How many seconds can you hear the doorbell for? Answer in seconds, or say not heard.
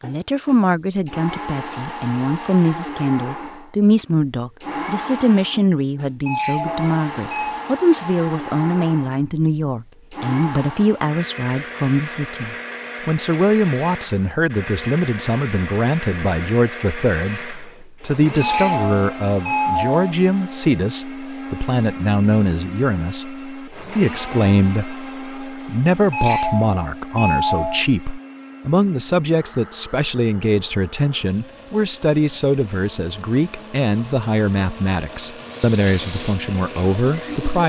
5 s.